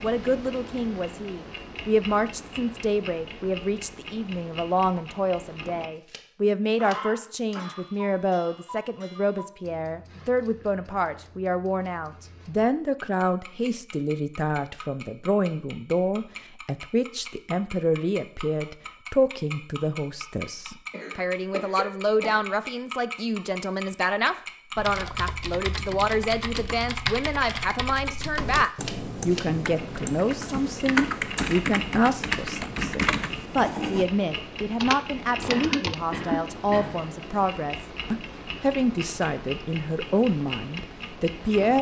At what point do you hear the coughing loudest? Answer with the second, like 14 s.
36 s.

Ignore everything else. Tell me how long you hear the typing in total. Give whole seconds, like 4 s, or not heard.
11 s.